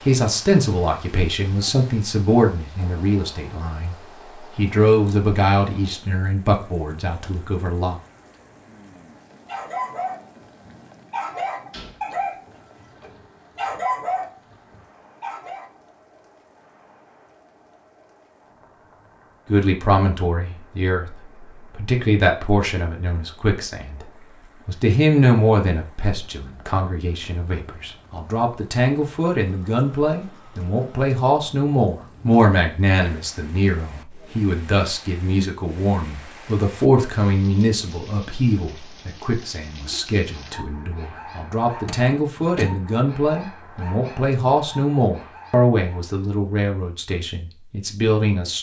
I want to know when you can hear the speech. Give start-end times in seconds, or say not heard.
0.0-8.0, 19.4-24.1, 24.6-48.5.